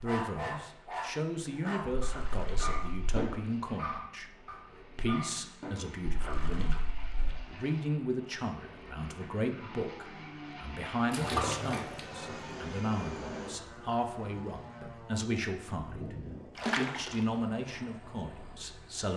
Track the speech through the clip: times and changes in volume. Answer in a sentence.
You can hear the speech from 0.0 to 16.1 s, at a steady volume; and briefly from 16.8 to 19.1 s.